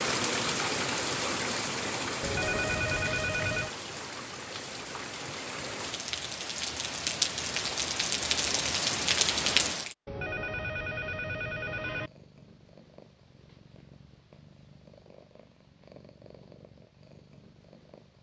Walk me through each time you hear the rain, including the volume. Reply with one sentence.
The rain can be heard from 0.0 to 9.9 s, getting quieter then louder.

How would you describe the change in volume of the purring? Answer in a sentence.
The volume of the purring stays about the same.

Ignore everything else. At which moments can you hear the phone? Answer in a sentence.
You can hear the phone from 2.2 to 3.8 s and from 10.1 to 12.1 s.